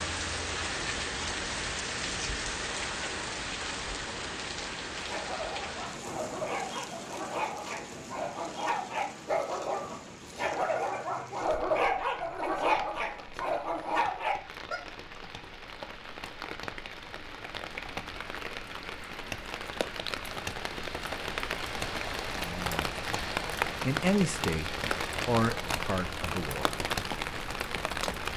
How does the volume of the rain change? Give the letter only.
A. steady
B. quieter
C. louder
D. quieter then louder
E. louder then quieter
D.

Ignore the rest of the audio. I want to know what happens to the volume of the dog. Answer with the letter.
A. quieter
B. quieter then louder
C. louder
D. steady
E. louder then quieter
C.